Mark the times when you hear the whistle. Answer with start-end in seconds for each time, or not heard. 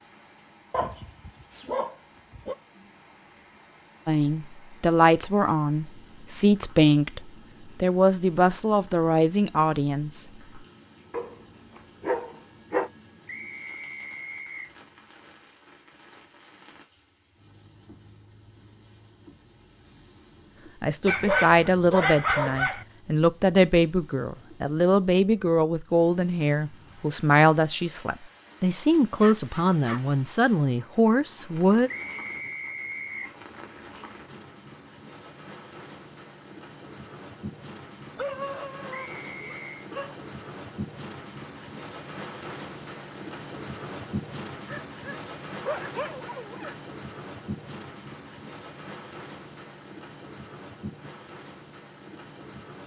13.2-14.8, 31.9-33.4, 38.9-39.8.